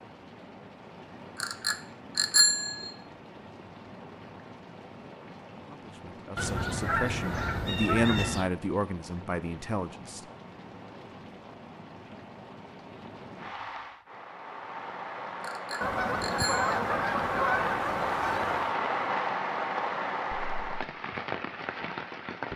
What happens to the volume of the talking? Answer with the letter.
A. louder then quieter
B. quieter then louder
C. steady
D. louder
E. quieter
A.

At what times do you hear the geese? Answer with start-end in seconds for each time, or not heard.
6.3-8.5, 15.8-18.8.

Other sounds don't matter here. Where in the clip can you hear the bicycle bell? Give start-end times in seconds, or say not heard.
1.4-3.0, 15.4-16.8.